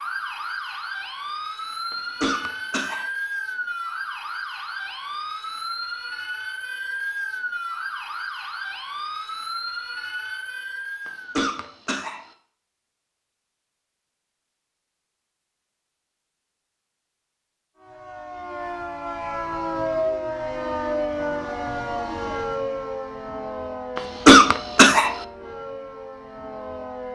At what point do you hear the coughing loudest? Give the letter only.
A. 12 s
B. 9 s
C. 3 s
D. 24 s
D.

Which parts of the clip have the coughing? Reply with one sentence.
You can hear the coughing from 1.9 to 3.0 s, from 11.1 to 12.3 s and from 23.9 to 25.2 s.